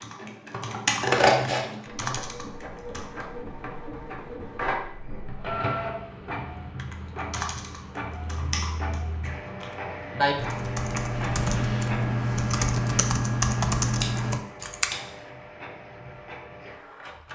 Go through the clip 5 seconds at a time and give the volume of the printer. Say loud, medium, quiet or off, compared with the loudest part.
loud, loud, loud, medium.